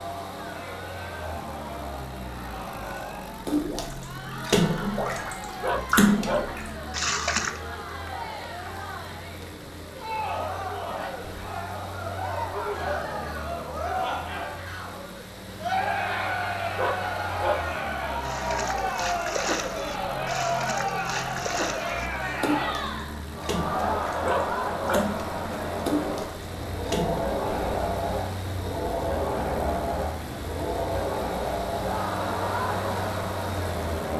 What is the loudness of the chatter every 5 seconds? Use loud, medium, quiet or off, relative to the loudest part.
medium, medium, loud, loud, loud, loud, loud.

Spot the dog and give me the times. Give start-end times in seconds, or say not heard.
5.6-6.5, 16.8-17.7, 24.2-25.1.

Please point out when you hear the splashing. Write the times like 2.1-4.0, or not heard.
3.5-7.6, 18.2-27.3.